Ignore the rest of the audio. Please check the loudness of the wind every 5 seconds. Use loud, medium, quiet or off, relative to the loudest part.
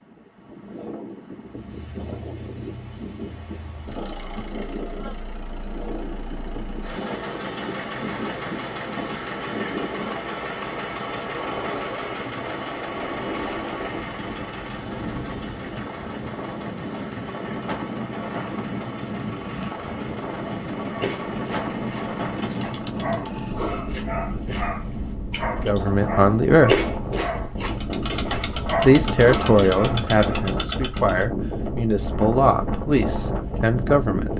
medium, medium, medium, loud, loud, loud, loud.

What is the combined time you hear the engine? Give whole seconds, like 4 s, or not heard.
26 s.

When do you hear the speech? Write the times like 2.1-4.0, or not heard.
25.6-26.8, 28.8-34.3.